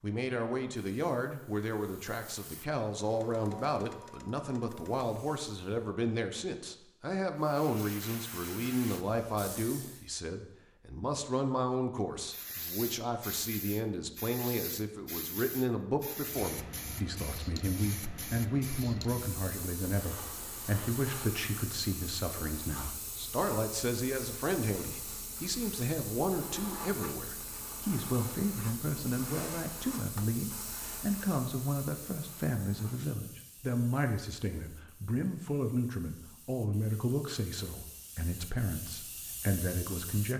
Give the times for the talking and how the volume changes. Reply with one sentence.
You can hear the talking from 0.0 to 40.3 s, at a steady volume.